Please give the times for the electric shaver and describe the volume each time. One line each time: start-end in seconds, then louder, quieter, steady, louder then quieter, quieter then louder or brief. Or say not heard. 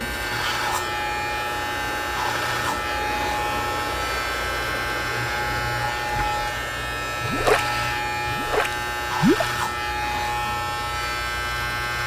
0.0-12.0 steady.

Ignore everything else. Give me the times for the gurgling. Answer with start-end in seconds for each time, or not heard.
7.2-9.5.